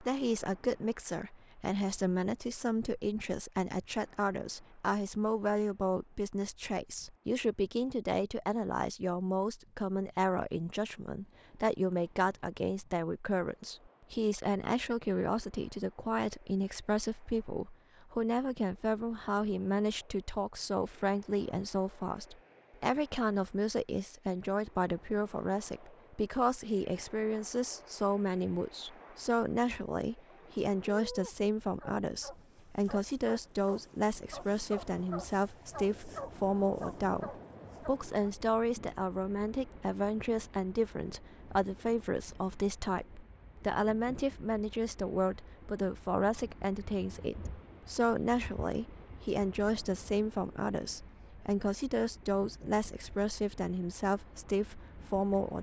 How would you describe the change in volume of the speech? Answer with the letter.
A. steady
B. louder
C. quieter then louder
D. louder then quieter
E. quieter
A.